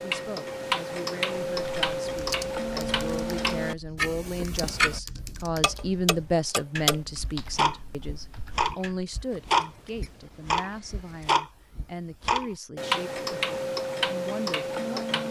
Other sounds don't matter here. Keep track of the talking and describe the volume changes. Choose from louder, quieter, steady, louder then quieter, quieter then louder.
louder then quieter.